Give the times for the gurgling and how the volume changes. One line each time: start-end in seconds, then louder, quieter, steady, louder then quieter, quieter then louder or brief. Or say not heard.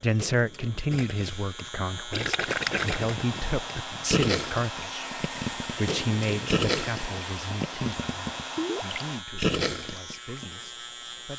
0.9-10.6 steady.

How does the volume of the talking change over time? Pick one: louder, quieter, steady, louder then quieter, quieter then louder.
quieter.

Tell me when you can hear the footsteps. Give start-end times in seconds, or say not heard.
not heard.